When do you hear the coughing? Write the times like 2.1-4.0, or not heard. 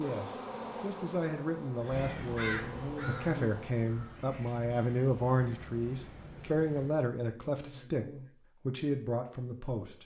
2.5-3.5, 7.2-8.3.